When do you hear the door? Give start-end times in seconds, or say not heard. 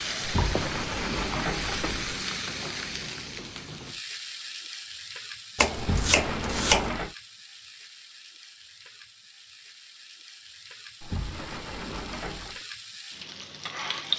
0.2-2.2, 5.8-7.2, 11.0-12.6.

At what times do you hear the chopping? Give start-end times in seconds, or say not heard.
5.5-6.9.